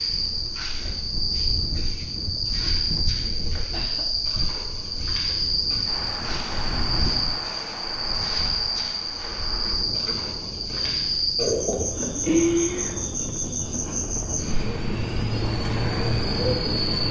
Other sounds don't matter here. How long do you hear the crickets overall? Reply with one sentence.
The crickets can be heard for 17 seconds in total.